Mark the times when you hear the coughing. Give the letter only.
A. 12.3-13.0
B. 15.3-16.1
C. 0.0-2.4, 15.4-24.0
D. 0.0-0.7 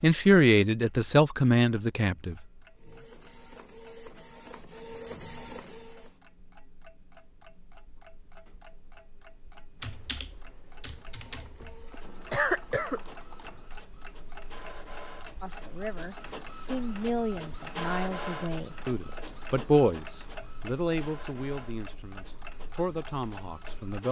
A.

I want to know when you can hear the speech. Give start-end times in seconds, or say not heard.
0.0-2.4, 15.4-24.0.